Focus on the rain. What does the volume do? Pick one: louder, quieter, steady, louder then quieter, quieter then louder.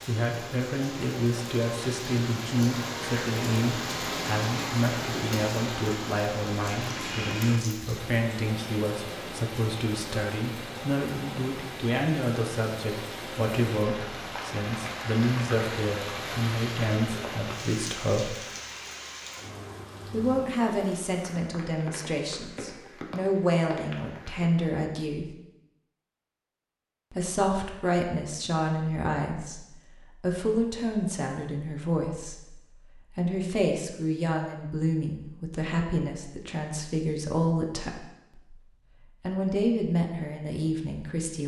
quieter.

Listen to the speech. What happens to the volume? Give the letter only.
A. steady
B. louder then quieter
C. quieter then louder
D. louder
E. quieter
A.